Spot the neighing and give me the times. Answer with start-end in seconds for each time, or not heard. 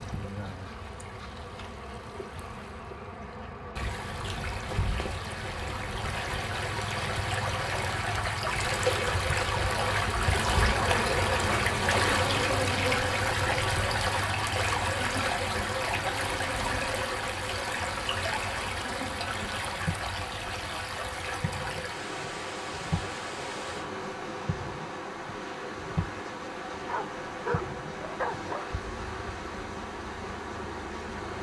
not heard.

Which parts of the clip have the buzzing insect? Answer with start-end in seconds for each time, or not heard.
0.0-31.3.